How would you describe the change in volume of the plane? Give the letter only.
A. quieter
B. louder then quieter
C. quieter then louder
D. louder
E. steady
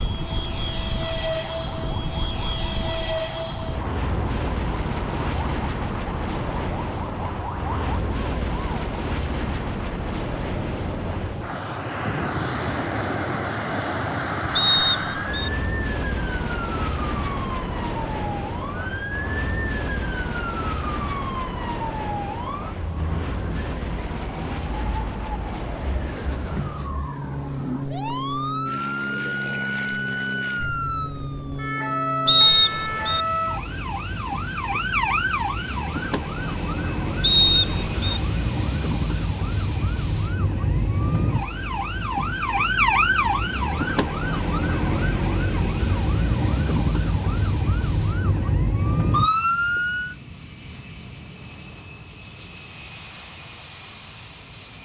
A.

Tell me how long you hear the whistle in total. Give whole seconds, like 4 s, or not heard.
3 s.